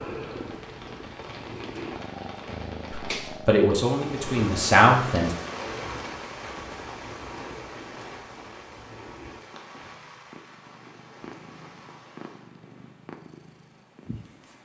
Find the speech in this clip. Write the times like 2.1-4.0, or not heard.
2.9-5.3.